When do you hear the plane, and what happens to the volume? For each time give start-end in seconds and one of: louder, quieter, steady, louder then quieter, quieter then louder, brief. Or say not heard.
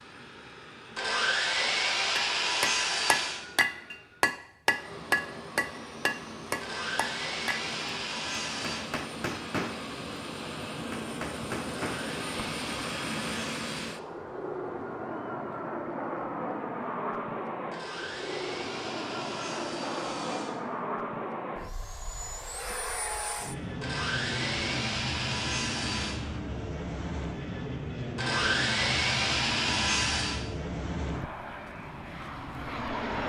0.0-33.2 louder.